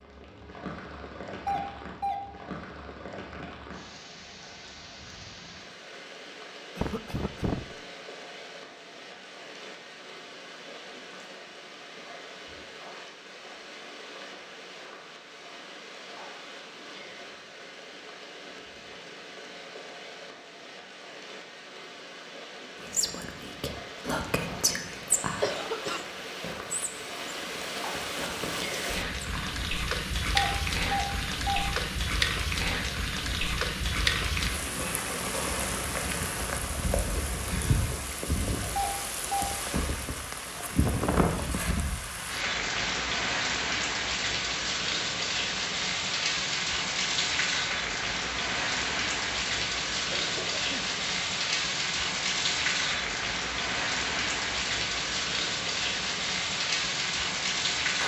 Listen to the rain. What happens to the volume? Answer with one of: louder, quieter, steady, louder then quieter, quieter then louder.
louder.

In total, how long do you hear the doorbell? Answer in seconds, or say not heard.
3 s.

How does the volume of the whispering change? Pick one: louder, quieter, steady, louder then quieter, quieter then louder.
quieter then louder.